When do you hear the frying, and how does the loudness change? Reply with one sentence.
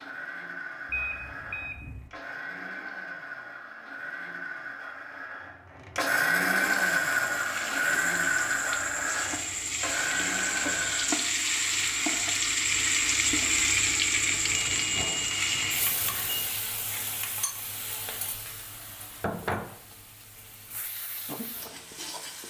The frying can be heard from 6.6 to 22.4 s, getting louder then quieter.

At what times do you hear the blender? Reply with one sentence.
You can hear the blender from 0.0 to 11.2 s.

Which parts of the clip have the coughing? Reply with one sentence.
You can't hear the coughing here.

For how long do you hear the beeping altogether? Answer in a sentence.
You can hear the beeping for 3 seconds altogether.